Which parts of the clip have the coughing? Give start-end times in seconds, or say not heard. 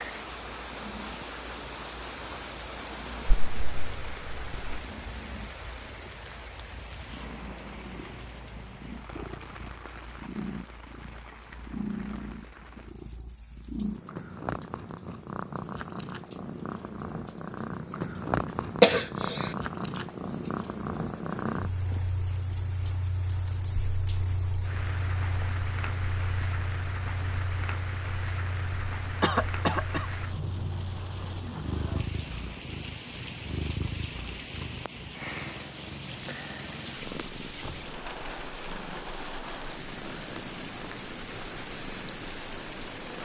3.2-4.8, 18.8-19.4, 29.2-30.1.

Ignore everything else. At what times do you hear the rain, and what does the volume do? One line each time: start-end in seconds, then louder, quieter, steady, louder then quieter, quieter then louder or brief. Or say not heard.
0.0-43.2 quieter then louder.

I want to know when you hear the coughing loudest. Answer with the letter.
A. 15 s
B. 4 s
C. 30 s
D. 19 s
D.